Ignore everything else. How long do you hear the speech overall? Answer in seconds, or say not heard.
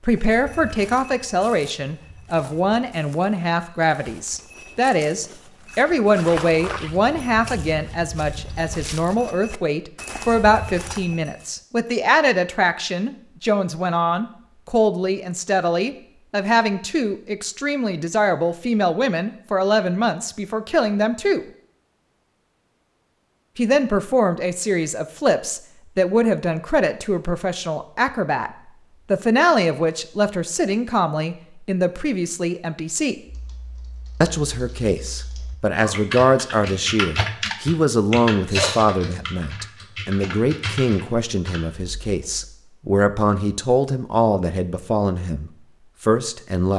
43 s.